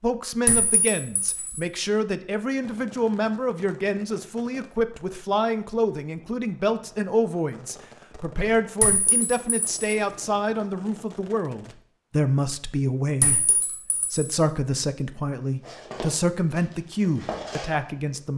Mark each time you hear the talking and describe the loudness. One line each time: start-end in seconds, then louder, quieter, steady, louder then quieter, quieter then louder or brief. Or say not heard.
0.0-18.3 steady.